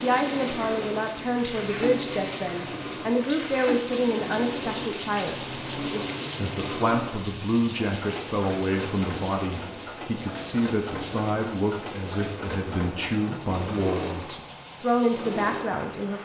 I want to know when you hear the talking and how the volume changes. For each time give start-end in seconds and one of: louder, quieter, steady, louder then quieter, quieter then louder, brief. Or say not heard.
0.0-16.2 steady.